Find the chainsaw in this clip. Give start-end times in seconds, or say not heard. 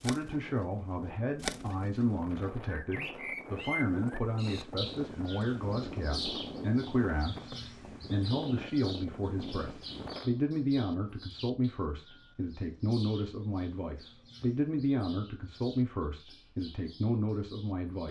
not heard.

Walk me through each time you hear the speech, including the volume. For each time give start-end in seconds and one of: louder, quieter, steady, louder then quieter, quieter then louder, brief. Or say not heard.
0.0-18.0 steady.